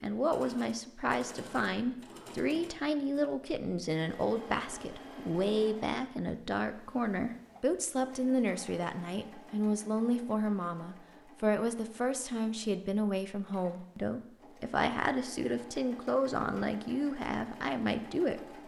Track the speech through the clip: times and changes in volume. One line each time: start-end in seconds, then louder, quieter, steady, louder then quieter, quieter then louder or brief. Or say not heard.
0.0-18.4 steady.